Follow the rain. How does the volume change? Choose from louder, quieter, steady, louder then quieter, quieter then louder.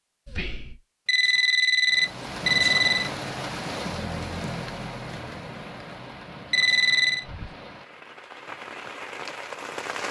quieter then louder.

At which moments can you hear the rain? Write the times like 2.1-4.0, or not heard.
1.9-10.0.